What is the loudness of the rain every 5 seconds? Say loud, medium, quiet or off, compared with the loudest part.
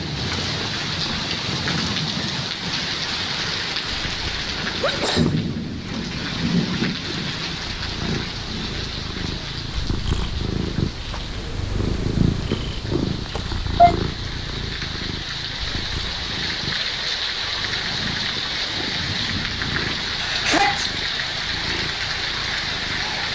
loud, loud, medium, loud, loud.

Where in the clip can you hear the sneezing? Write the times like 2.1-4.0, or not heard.
4.8-5.9, 13.3-13.9, 20.2-20.9.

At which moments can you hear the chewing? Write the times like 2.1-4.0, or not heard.
not heard.